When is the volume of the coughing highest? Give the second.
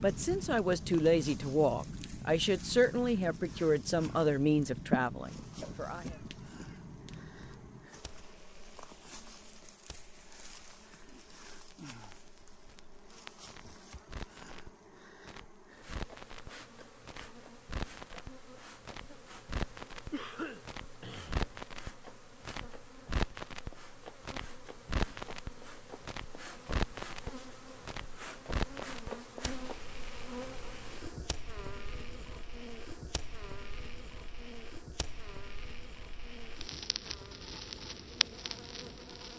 5 s.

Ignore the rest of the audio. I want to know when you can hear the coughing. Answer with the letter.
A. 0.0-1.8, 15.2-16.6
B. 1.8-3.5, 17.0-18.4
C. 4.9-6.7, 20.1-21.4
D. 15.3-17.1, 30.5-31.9
C.